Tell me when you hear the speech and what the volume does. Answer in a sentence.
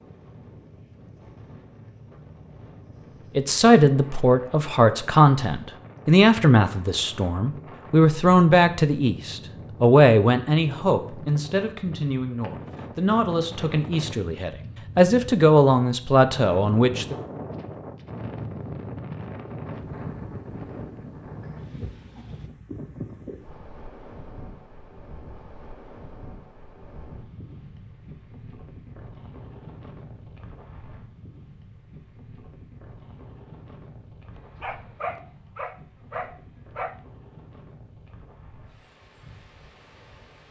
You can hear the speech from 3.4 to 17.1 s, getting quieter then louder.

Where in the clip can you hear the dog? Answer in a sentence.
You can hear the dog from 34.6 to 37.0 s.